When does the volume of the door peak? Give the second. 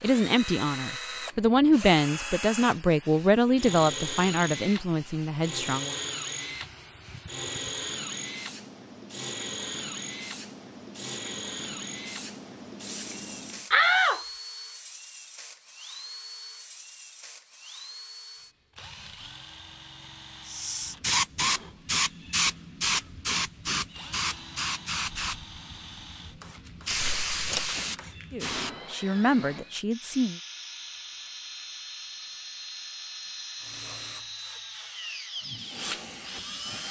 14 s.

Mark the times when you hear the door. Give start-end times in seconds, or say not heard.
13.7-14.2, 26.9-27.7.